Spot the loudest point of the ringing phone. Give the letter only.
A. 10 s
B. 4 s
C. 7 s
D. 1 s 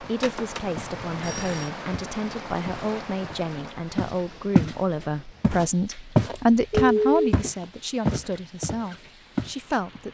C.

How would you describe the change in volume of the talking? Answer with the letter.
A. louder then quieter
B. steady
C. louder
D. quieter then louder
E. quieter
A.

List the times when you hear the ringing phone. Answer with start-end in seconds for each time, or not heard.
0.2-1.7, 6.3-7.3.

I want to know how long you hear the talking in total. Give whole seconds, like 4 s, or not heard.
10 s.